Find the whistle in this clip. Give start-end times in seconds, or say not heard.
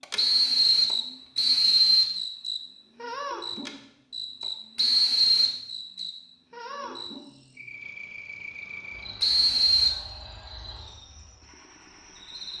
0.1-2.1, 4.8-6.0, 9.2-10.0.